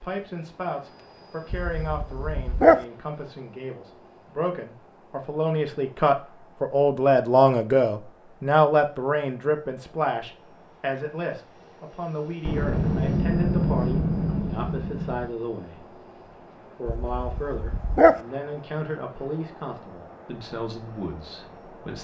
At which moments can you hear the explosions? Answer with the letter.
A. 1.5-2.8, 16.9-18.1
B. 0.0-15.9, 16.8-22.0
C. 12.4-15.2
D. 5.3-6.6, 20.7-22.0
C.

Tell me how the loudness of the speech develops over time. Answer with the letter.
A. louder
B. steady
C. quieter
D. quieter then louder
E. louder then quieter
E.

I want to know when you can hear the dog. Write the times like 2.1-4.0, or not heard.
1.5-2.8, 16.9-18.1.